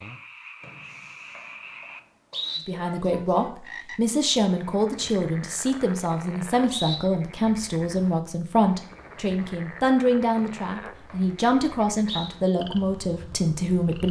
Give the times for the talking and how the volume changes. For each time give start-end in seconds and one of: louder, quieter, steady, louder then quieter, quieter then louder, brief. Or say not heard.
2.6-14.0 steady.